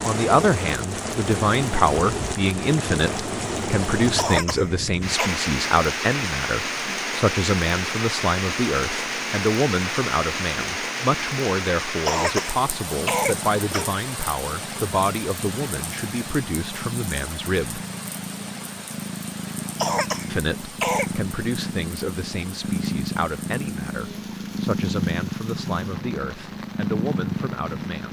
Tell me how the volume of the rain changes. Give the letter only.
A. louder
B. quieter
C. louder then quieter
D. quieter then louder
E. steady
B.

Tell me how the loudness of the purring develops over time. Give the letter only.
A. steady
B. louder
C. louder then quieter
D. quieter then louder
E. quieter
B.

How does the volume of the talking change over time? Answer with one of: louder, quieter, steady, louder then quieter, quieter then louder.
quieter.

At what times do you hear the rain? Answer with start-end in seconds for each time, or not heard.
0.0-28.0.